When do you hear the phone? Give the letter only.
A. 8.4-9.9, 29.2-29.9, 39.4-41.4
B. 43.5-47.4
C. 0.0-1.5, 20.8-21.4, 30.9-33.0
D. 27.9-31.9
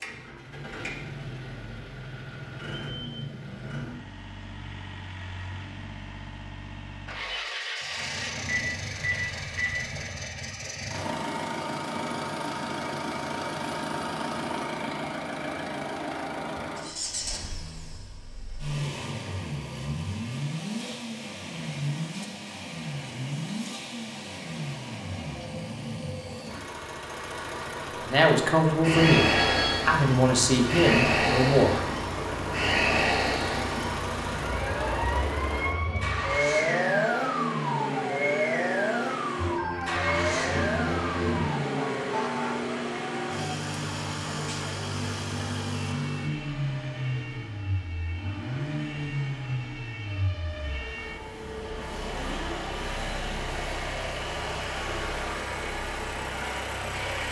A.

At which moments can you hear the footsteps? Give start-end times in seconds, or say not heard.
not heard.